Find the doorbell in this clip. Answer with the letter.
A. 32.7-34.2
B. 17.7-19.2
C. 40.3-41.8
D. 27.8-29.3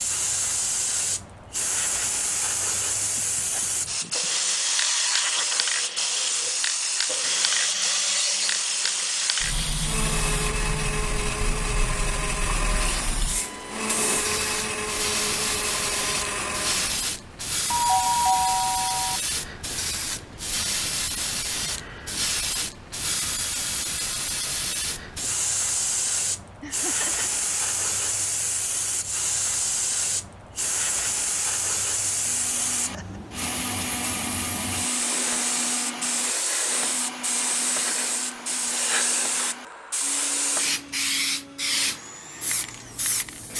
B.